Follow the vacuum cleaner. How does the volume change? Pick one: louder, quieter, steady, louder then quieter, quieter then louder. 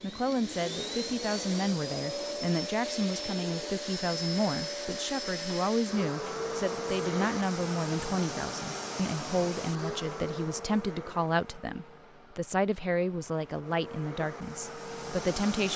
quieter.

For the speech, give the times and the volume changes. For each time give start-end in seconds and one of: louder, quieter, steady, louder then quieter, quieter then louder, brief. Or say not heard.
0.0-15.7 steady.